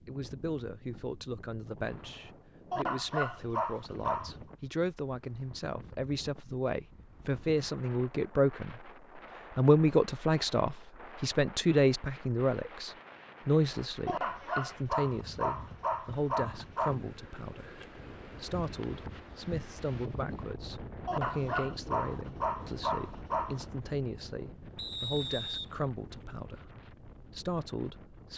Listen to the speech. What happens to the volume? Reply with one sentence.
The volume of the speech goes up, then down.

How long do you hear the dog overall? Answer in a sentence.
The dog can be heard for 7 seconds in total.